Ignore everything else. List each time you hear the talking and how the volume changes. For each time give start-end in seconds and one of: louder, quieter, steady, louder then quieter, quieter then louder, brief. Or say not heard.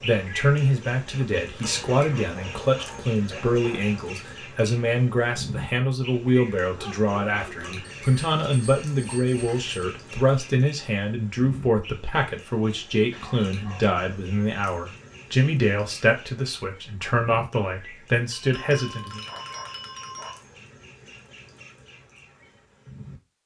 0.0-19.2 steady.